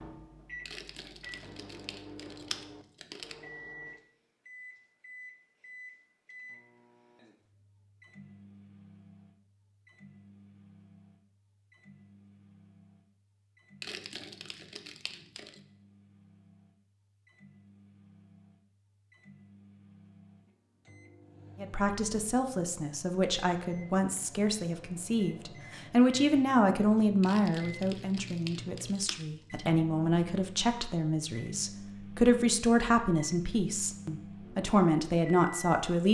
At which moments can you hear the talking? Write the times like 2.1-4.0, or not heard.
21.6-36.0.